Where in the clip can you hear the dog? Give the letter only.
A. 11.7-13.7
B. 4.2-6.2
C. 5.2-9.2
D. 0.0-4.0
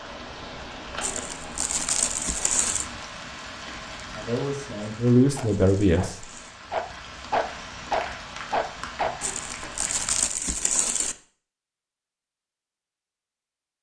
C.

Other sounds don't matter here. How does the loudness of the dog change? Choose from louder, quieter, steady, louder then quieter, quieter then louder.
louder.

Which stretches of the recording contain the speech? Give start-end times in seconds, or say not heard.
4.2-6.2.